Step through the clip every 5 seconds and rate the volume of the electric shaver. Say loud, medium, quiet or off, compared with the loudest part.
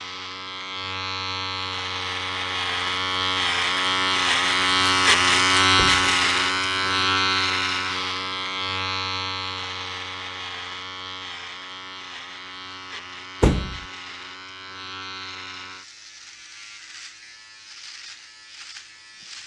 loud, loud, quiet, quiet.